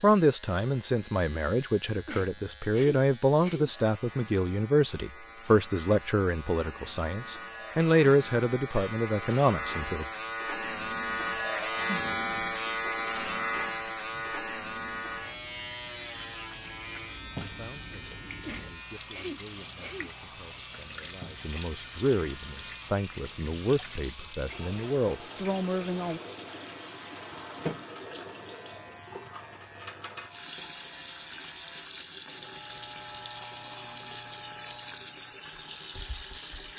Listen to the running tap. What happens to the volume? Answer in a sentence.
The volume of the running tap goes up.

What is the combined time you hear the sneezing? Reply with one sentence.
You can hear the sneezing for 3 seconds altogether.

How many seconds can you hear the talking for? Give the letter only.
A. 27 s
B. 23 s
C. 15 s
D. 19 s
D.